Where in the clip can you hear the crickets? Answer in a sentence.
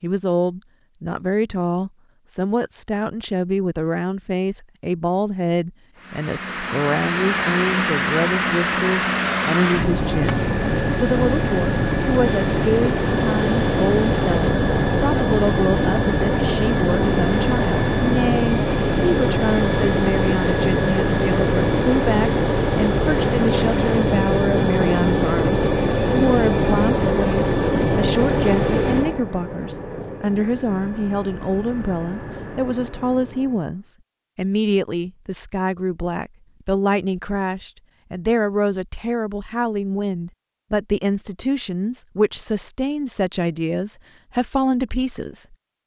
You can't hear the crickets here.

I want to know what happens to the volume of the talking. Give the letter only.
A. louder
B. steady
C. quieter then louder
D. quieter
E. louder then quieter
B.